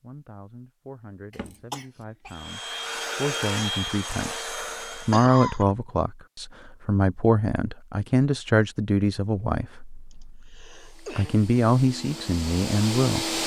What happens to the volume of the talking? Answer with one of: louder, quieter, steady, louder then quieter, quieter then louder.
louder.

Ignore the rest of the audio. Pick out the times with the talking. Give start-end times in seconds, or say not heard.
0.0-13.3.